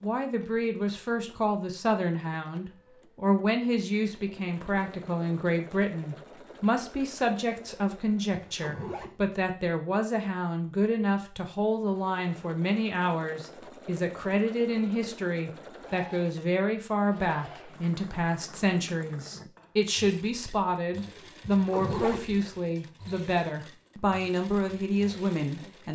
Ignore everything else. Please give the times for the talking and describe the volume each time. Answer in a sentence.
You can hear the talking from 0.0 to 25.9 s, at a steady volume.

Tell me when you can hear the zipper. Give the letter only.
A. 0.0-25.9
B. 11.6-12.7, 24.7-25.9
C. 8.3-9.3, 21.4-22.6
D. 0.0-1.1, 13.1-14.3
C.